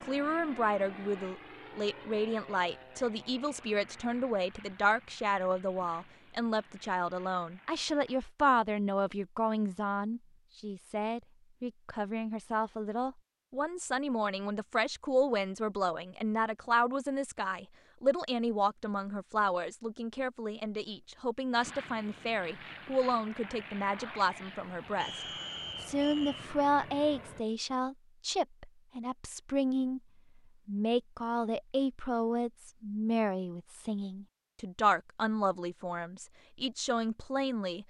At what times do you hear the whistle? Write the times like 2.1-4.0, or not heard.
24.9-26.4.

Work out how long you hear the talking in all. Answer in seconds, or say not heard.
37 s.